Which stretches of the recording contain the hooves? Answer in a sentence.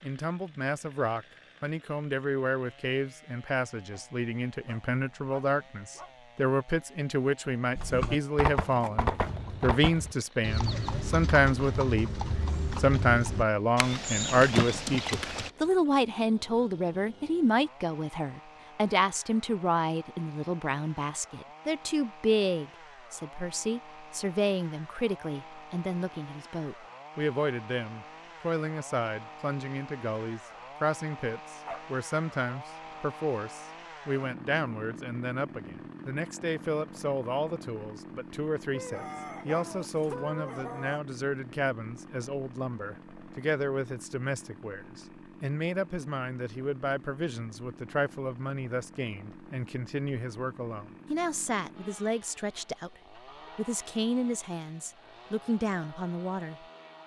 The hooves can be heard from 7.8 to 15.5 s.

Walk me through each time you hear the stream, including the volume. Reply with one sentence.
You can't hear the stream here.